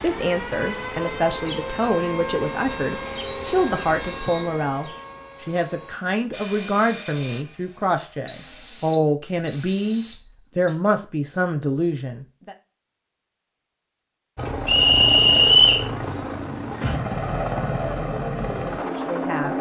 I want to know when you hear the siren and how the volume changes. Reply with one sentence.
You can hear the siren from 0.0 to 6.2 s, getting quieter.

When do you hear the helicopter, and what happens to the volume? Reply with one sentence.
The helicopter can be heard briefly from 6.3 to 8.6 s; and from 14.3 to 19.5 s, at a steady volume.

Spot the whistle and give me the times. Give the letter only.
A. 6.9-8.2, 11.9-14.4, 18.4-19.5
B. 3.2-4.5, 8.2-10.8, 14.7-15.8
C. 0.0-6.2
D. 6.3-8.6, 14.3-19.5
B.